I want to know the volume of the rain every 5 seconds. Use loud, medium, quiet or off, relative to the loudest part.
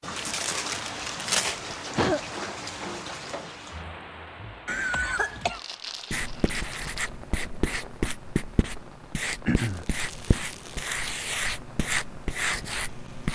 loud, quiet, quiet.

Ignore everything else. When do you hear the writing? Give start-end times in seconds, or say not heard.
6.1-13.3.